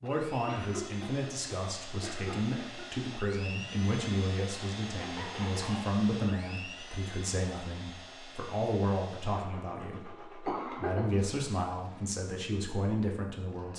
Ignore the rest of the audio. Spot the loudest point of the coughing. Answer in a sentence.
The loudest moment of the coughing is at 11 seconds.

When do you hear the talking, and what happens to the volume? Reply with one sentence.
You can hear the talking from 0.0 to 13.7 s, at a steady volume.